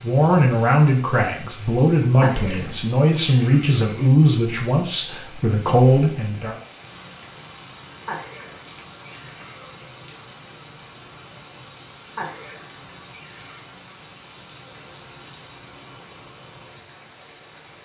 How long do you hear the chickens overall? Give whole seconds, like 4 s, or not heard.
not heard.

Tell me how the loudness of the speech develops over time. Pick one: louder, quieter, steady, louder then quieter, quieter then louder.
steady.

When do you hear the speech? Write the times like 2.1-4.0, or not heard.
0.0-6.5.